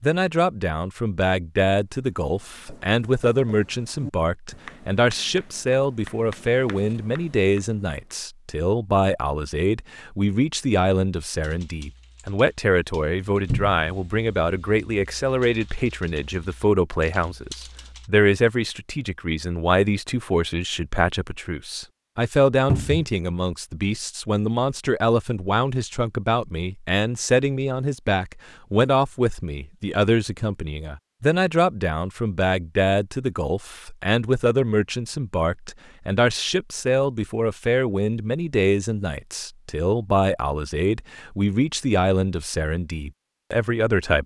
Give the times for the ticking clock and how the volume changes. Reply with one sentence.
You can't hear the ticking clock here.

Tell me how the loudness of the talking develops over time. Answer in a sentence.
The loudness of the talking stays about the same.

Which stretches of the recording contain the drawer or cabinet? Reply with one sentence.
You can hear the drawer or cabinet from 13.4 to 13.8 s and from 22.6 to 23.1 s.